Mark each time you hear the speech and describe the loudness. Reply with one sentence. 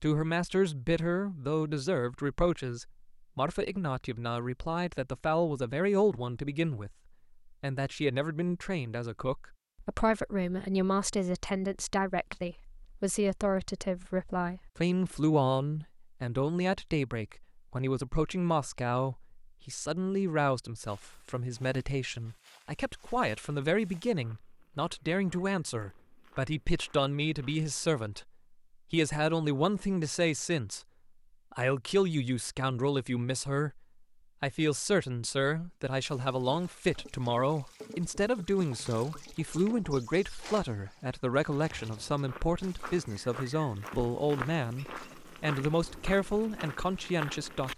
The speech can be heard from 0.0 to 28.3 s, at a steady volume; briefly from 28.9 to 30.8 s; briefly from 31.5 to 33.8 s; and from 34.4 to 47.7 s, at a steady volume.